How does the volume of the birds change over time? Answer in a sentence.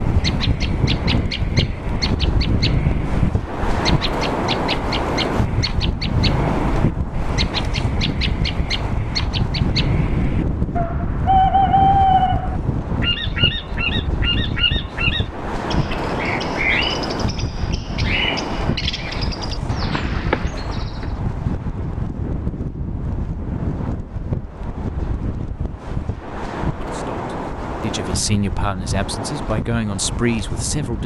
The loudness of the birds goes up, then down.